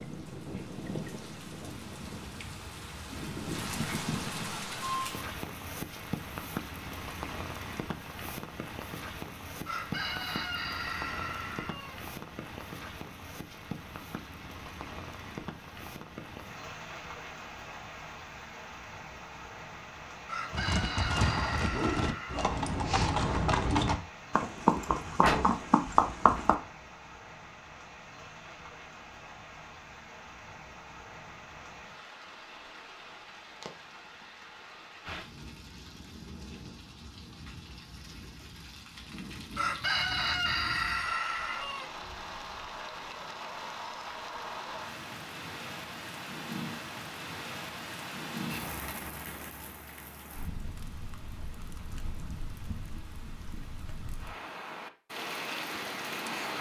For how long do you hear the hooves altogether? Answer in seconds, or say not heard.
6 s.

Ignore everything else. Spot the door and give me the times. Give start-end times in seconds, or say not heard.
25.2-26.4.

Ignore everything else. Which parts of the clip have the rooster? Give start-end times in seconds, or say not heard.
9.7-11.9, 20.2-22.6, 39.5-41.9.